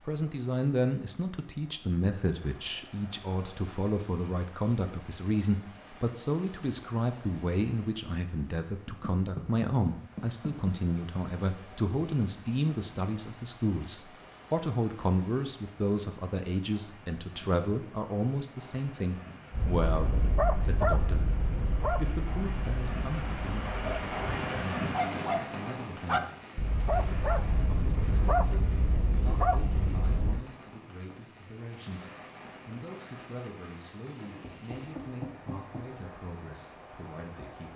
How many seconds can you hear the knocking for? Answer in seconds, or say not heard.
4 s.